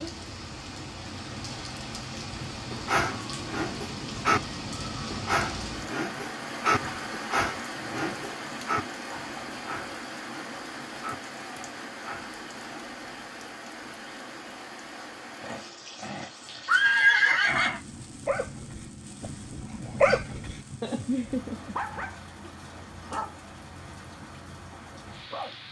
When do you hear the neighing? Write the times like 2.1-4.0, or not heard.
15.4-17.8.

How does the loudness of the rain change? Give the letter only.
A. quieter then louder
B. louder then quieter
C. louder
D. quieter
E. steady
D.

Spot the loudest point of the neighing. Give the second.
17 s.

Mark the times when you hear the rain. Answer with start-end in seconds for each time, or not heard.
0.0-25.6.